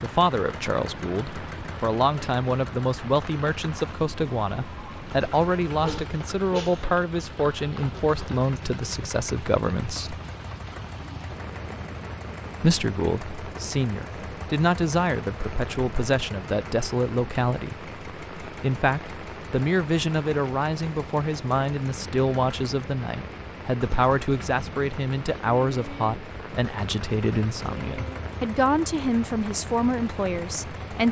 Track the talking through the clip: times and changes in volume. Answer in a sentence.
The talking can be heard from 0.0 to 10.2 s, at a steady volume; and from 12.6 to 31.0 s, at a steady volume.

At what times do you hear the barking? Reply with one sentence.
You can hear the barking from 5.8 to 6.8 s.